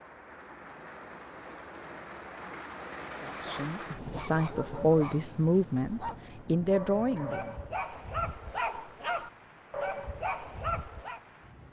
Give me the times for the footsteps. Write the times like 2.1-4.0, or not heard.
not heard.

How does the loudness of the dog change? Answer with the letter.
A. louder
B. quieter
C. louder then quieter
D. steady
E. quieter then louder
A.